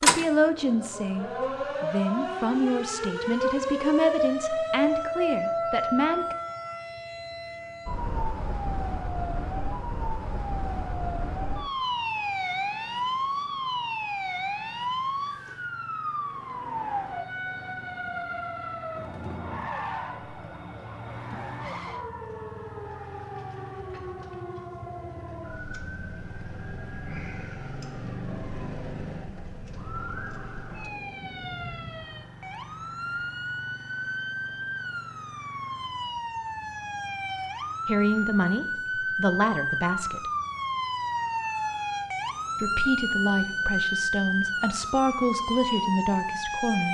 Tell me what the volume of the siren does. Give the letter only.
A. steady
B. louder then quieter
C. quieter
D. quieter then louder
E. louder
D.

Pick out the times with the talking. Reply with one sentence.
The talking can be heard from 0.0 to 6.3 s, from 37.9 to 40.3 s and from 42.6 to 46.8 s.